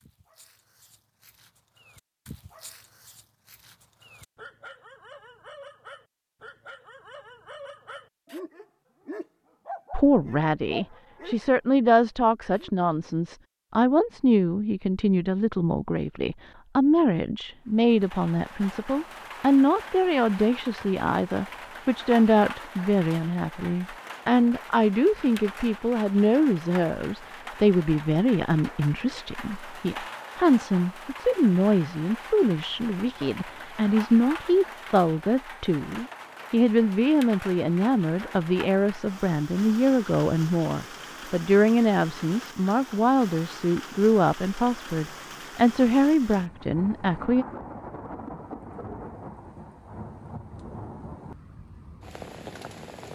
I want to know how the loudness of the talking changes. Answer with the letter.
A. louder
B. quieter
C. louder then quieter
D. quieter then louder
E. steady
E.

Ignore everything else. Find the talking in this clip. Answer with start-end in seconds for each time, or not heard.
9.9-47.5.